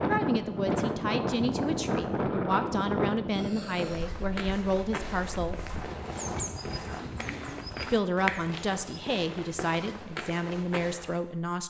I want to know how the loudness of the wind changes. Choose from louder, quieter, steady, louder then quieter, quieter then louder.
quieter then louder.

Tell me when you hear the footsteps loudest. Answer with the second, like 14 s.
8 s.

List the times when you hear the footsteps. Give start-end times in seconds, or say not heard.
3.8-11.2.